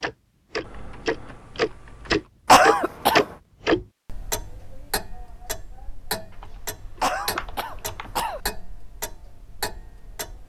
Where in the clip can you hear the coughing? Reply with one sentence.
The coughing can be heard from 2.5 to 3.2 s and from 7.0 to 8.4 s.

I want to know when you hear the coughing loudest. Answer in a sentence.
The loudest moment of the coughing is at 3 seconds.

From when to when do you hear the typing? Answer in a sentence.
You can hear the typing from 0.6 to 2.3 s and from 6.3 to 8.2 s.